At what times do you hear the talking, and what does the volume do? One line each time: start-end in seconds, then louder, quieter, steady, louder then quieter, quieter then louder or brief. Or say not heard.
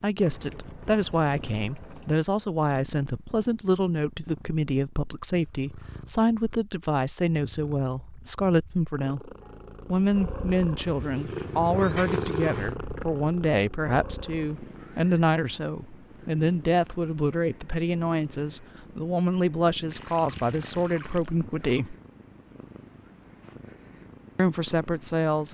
0.0-21.9 steady
24.4-25.4 brief.